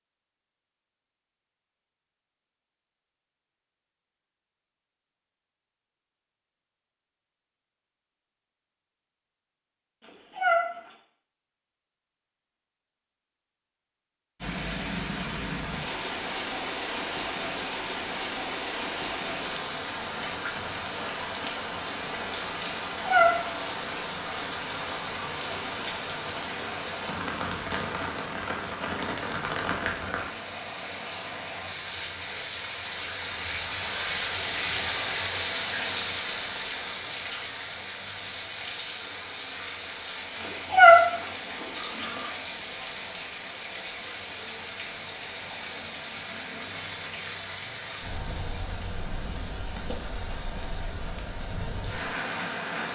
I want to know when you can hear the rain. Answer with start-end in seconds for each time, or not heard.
14.4-52.8.